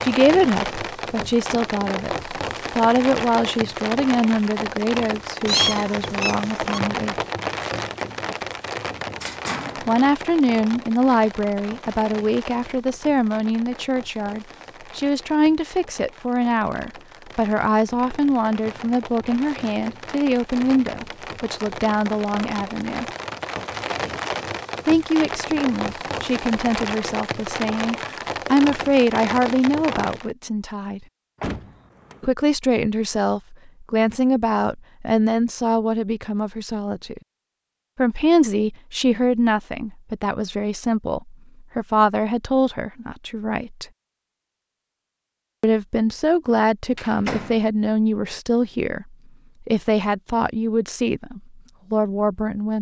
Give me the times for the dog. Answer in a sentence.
The dog can't be heard in this clip.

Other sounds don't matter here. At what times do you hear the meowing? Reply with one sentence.
The meowing can be heard from 5.5 to 6.8 s.